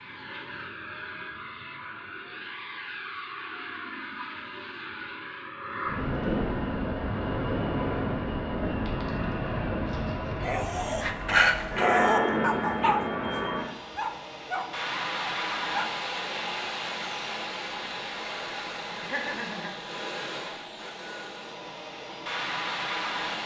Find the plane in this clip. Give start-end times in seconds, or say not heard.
0.0-23.4.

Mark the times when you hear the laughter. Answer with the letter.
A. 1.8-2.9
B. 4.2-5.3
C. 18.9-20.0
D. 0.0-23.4
C.